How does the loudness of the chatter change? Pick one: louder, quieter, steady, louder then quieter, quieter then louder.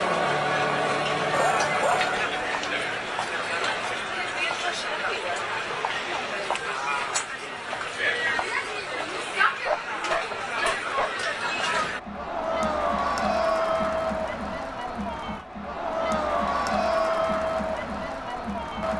steady.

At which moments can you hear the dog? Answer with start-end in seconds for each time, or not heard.
1.3-2.1, 9.6-11.1.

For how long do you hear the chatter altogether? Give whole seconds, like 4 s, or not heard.
19 s.